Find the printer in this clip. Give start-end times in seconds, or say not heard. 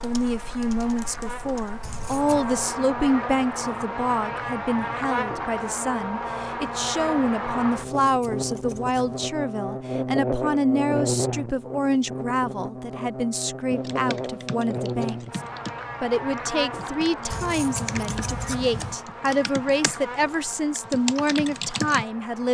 not heard.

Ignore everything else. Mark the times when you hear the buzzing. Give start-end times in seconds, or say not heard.
0.0-22.5.